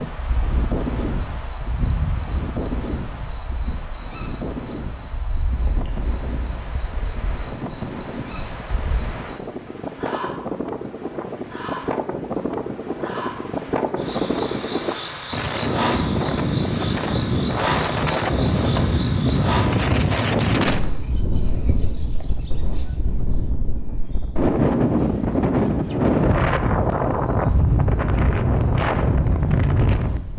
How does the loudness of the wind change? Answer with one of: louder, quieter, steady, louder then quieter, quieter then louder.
louder.